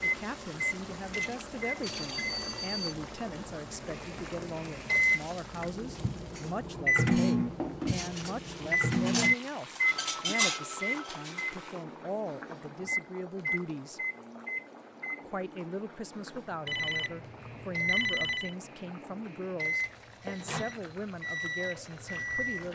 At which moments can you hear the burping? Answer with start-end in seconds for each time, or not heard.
not heard.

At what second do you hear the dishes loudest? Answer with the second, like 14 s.
10 s.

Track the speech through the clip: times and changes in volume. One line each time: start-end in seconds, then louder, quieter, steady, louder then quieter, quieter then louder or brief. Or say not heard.
0.0-14.0 steady
15.2-22.6 steady.